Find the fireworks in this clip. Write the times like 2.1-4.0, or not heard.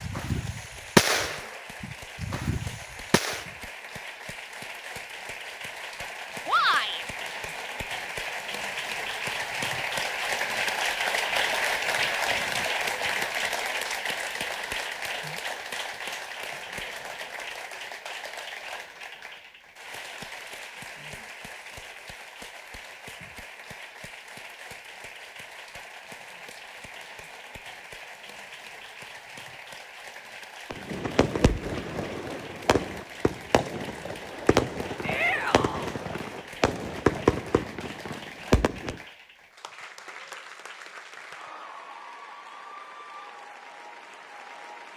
0.0-3.5, 30.7-39.0.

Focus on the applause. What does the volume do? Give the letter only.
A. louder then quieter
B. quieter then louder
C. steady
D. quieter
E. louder
A.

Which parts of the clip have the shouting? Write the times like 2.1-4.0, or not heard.
6.5-7.0, 35.0-35.9.